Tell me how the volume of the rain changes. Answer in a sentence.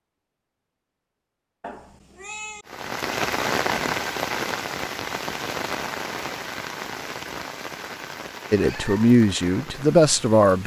The loudness of the rain goes down.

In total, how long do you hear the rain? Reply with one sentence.
The rain can be heard for 8 seconds in total.